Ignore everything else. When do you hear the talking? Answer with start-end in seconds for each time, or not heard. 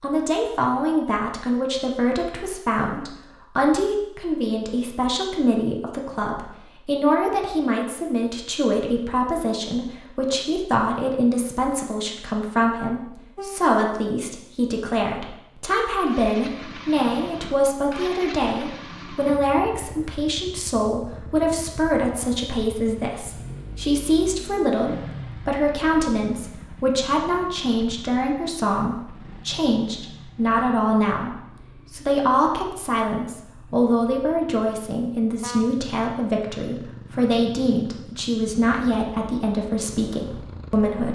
0.0-41.1.